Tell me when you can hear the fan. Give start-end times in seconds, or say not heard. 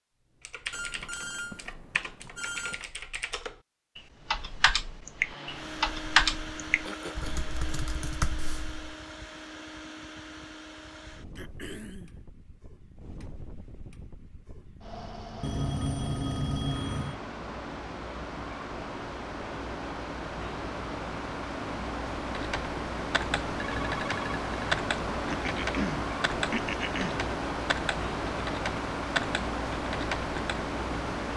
5.1-31.3.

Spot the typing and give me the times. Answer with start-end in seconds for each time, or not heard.
0.5-8.9, 22.3-30.6.